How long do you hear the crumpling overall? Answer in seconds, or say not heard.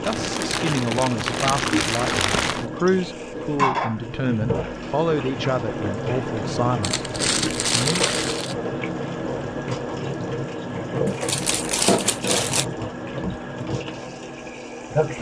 6 s.